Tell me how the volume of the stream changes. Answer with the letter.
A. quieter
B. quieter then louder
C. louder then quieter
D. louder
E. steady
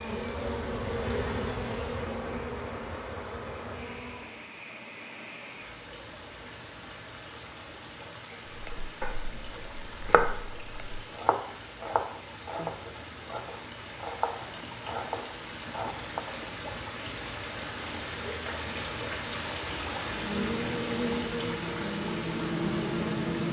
D.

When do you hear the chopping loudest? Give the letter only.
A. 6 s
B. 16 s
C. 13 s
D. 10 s
D.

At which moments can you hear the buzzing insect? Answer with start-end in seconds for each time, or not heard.
0.0-4.4, 20.0-23.4.